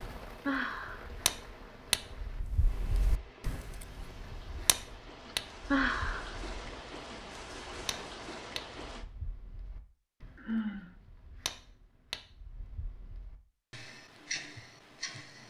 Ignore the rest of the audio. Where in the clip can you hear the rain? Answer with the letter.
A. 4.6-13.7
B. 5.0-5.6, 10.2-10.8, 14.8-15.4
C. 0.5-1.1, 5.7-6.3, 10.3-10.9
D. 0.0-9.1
D.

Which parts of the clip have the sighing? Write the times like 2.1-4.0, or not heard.
0.5-1.1, 5.7-6.3, 10.3-10.9.